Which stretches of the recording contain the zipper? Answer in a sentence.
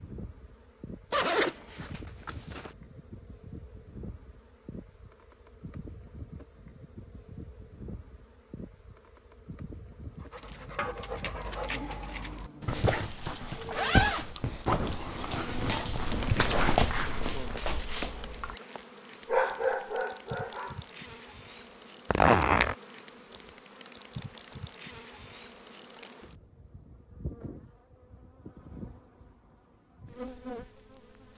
The zipper can be heard from 1.1 to 2.8 s, from 12.6 to 14.3 s and from 22.1 to 22.8 s.